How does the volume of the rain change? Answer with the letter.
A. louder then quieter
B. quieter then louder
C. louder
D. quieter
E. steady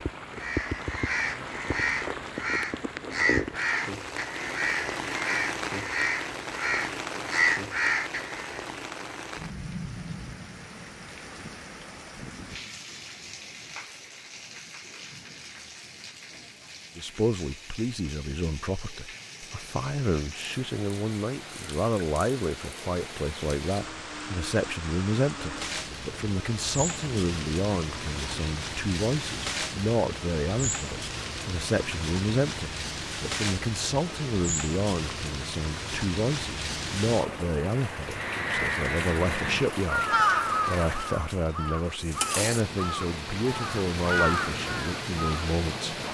B.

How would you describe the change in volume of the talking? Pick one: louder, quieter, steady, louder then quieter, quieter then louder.
steady.